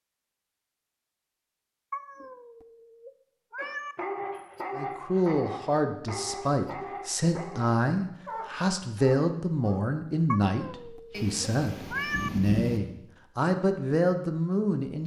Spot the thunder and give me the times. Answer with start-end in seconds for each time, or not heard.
11.1-12.8.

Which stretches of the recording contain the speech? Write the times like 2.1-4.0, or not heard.
4.8-15.0.